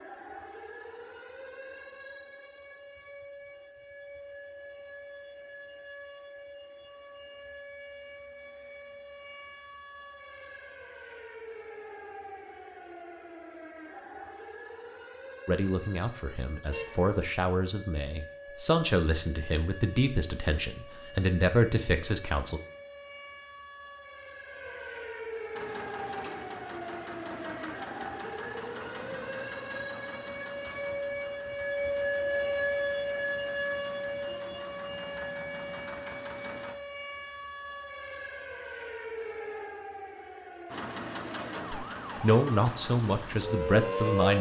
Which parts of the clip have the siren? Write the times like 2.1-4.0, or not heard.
0.0-44.3.